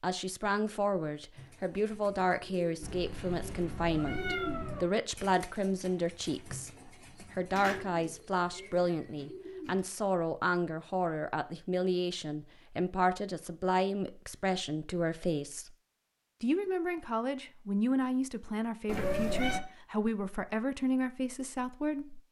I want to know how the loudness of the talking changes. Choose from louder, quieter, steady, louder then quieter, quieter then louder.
steady.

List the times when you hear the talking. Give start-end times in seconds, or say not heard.
0.0-15.7, 16.4-22.2.